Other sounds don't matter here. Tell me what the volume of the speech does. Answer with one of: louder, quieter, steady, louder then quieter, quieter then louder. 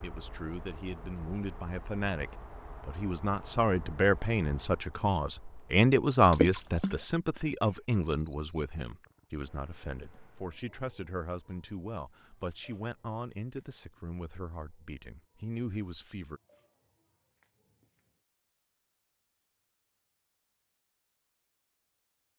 louder then quieter.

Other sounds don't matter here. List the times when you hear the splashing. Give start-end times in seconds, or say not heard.
6.3-7.0.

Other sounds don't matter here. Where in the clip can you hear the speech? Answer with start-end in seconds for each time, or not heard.
0.0-16.4.